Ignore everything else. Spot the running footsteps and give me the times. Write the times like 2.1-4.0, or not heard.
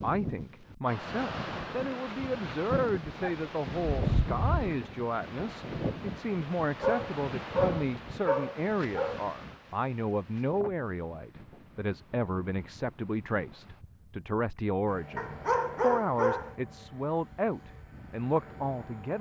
not heard.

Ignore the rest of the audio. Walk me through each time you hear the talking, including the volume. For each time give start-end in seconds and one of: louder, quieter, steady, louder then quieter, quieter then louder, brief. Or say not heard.
0.0-19.1 steady.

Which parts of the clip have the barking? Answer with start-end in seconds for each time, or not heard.
3.0-4.8, 6.8-9.2, 15.2-16.6.